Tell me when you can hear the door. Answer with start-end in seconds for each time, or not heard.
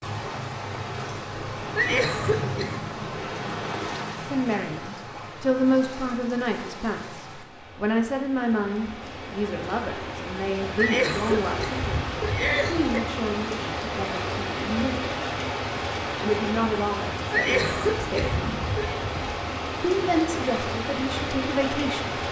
not heard.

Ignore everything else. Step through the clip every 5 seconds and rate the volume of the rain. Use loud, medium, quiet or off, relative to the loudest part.
loud, medium, loud, loud, loud.